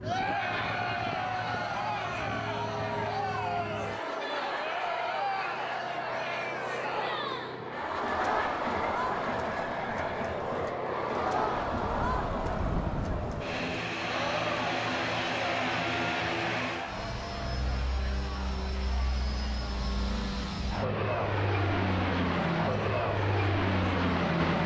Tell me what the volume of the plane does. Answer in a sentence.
The loudness of the plane goes up.